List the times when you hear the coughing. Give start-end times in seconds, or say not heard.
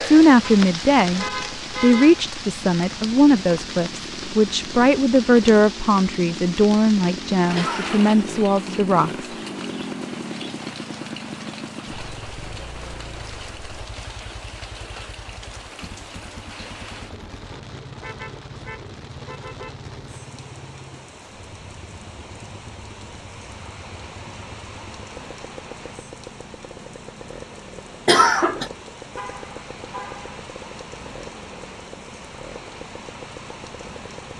7.5-8.2, 28.1-28.7.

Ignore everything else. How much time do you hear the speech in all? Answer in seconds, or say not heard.
9 s.